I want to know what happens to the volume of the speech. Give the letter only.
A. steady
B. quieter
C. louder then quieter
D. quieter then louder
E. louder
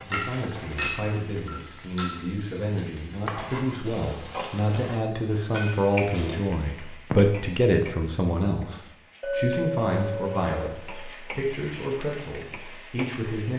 C.